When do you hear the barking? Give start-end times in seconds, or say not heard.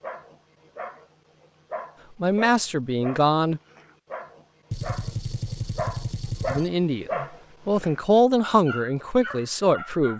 0.0-10.1.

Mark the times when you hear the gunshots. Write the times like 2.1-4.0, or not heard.
4.7-6.7.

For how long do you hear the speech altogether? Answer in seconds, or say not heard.
5 s.